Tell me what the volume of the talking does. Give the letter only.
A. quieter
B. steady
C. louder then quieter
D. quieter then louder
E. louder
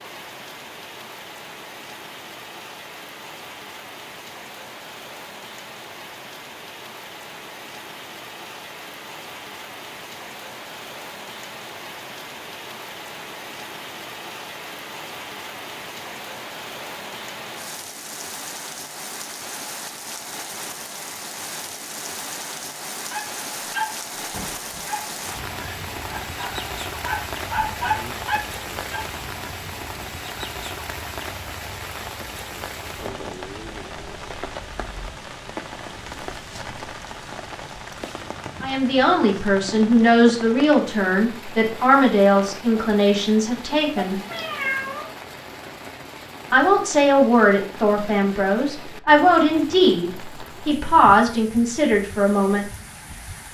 B.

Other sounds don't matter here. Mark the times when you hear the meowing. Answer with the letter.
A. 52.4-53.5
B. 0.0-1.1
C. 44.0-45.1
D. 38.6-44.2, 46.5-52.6
C.